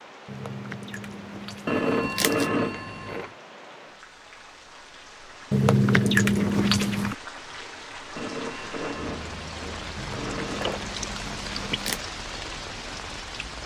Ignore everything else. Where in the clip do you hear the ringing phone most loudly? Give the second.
2 s.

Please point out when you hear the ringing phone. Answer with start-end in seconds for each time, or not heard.
1.6-3.3, 8.2-10.8.